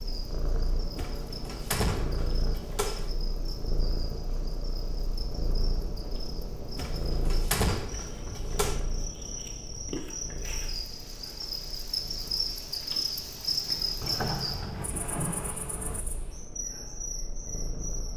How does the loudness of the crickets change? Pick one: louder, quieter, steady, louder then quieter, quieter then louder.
louder then quieter.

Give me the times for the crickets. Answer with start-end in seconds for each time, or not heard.
0.0-18.1.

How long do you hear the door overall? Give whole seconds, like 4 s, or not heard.
6 s.